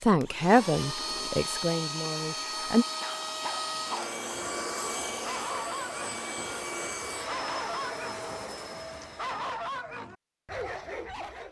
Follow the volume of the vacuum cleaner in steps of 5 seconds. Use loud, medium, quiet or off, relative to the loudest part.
loud, loud, off.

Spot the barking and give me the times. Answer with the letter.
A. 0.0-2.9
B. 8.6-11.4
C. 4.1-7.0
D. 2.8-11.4
D.